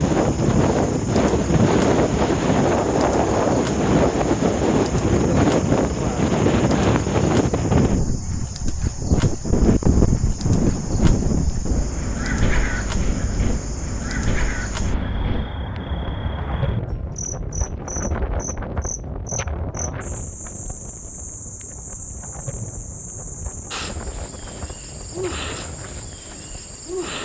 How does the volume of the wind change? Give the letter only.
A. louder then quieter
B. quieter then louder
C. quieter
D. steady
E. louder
C.